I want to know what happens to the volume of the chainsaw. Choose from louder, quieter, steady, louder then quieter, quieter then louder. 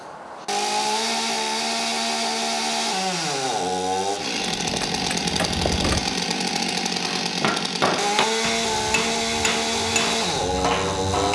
steady.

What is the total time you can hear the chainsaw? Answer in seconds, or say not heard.
11 s.